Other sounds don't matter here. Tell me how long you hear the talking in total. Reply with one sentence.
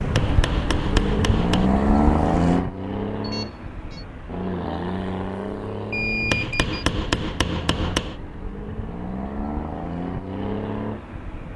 The talking can't be heard in this clip.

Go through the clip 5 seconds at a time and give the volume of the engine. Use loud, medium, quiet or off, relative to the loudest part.
loud, medium, medium.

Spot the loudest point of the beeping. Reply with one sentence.
The loudest moment of the beeping is at 6 seconds.